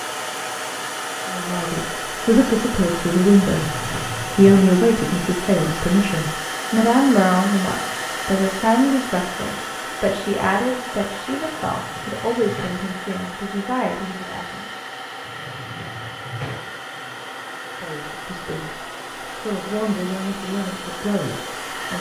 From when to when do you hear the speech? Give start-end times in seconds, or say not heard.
1.2-14.7, 17.8-21.9.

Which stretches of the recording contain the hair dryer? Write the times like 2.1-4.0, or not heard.
0.0-21.9.